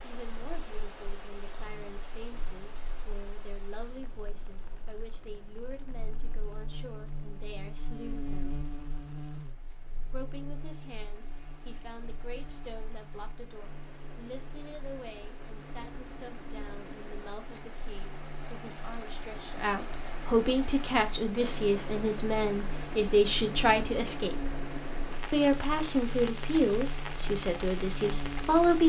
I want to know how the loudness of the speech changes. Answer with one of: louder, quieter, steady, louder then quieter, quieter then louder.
louder.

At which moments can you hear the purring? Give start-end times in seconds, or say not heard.
not heard.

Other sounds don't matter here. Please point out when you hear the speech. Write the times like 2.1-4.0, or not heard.
0.0-8.6, 10.1-24.5, 25.3-28.8.